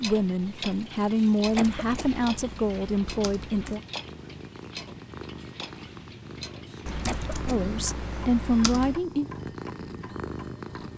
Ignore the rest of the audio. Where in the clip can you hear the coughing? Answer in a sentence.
You can hear the coughing from 1.1 to 2.0 s and from 6.7 to 7.3 s.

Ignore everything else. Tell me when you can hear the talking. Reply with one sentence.
The talking can be heard from 0.0 to 3.8 s and from 7.5 to 9.2 s.